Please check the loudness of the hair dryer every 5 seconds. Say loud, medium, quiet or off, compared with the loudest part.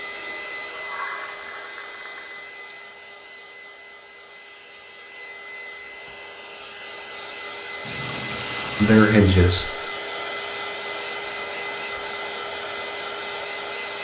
medium, loud, loud.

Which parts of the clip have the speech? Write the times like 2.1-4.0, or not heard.
8.8-9.7.